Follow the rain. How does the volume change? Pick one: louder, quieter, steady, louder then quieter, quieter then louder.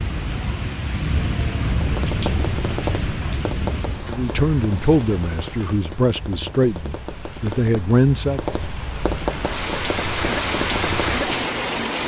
quieter then louder.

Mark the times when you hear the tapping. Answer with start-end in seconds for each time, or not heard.
1.6-11.2.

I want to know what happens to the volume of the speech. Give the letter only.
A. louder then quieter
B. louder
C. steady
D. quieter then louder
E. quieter
D.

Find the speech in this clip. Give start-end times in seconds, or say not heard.
4.0-8.4.